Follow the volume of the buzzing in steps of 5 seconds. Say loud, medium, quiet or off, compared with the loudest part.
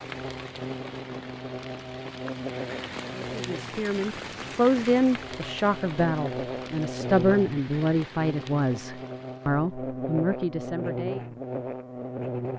medium, loud, loud.